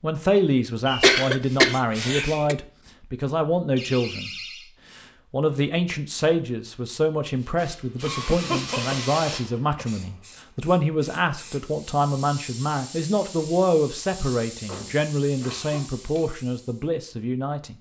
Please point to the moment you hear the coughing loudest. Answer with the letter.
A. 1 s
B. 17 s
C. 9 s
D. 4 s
A.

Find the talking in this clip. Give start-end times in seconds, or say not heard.
0.0-4.3, 5.0-17.7.